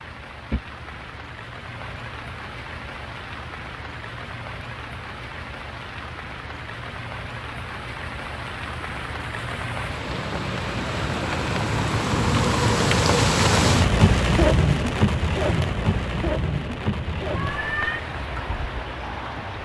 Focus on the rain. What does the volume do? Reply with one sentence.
The loudness of the rain goes up, then down.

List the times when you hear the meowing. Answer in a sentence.
You can hear the meowing from 17.3 to 18.0 s.